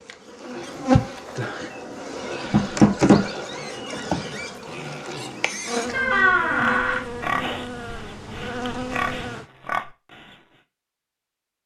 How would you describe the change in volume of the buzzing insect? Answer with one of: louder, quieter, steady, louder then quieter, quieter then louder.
quieter.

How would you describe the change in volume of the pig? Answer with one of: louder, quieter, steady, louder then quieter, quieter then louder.
louder.